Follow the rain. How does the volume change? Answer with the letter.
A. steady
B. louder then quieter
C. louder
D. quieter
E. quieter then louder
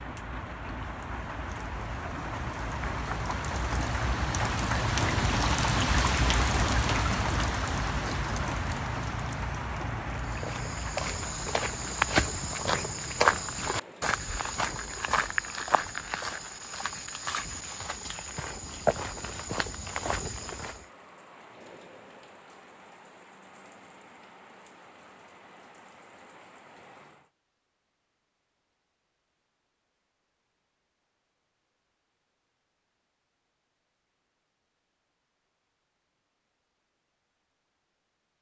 D.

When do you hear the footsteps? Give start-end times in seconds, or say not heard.
10.3-20.9.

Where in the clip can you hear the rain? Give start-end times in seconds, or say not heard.
0.0-27.3.